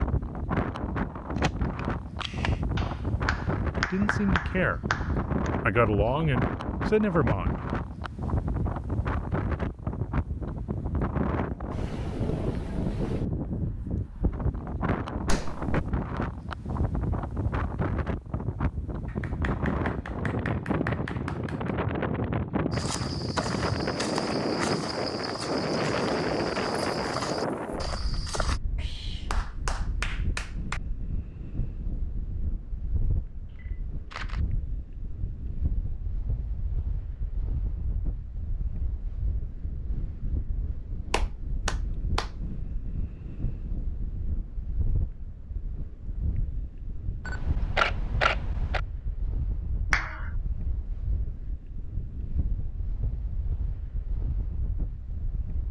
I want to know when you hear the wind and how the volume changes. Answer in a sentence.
The wind can be heard from 0.0 to 55.6 s, getting quieter.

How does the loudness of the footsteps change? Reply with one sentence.
The volume of the footsteps stays about the same.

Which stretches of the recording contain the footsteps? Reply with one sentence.
You can hear the footsteps from 22.7 to 28.6 s.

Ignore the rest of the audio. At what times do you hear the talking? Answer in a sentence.
You can hear the talking from 3.8 to 4.8 s and from 5.6 to 7.5 s.